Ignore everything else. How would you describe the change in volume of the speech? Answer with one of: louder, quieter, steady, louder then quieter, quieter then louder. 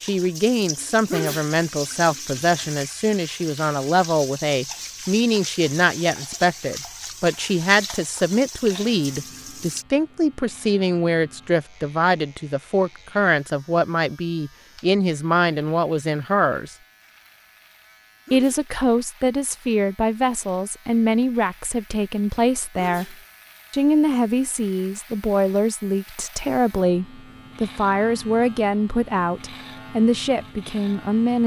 steady.